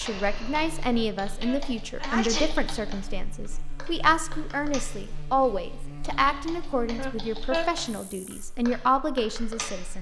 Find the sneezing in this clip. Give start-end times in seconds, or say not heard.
0.9-2.7, 7.0-7.7.